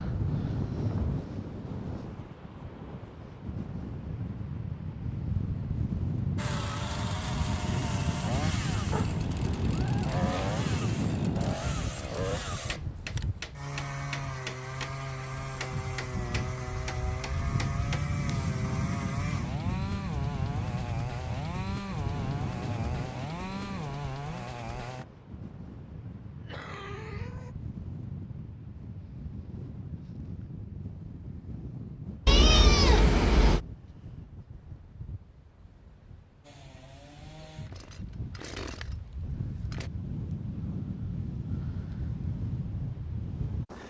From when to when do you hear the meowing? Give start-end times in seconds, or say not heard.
8.9-10.6, 32.2-33.6.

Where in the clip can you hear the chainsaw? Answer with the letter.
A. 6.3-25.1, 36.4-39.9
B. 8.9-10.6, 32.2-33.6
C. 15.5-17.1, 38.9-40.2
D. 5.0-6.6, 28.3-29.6
A.